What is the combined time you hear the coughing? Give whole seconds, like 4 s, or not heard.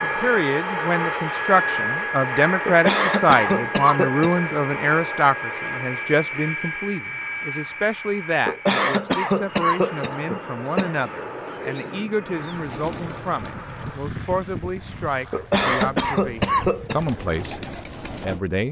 6 s.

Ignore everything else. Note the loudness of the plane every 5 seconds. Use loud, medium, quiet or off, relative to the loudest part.
loud, medium, medium, quiet.